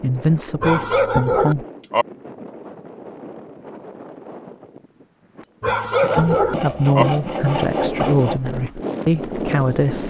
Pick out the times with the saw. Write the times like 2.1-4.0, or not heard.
6.0-8.4.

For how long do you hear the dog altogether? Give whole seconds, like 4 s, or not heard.
3 s.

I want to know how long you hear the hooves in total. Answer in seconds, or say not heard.
not heard.